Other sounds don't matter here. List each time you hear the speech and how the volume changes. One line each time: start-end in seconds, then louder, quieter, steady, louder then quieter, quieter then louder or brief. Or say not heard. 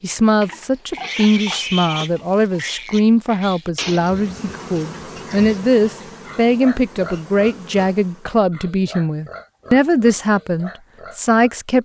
0.0-11.8 steady.